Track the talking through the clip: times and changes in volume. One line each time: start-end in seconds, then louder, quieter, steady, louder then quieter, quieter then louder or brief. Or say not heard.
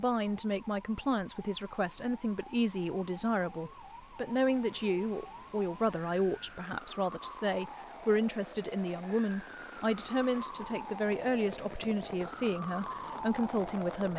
0.0-14.1 steady.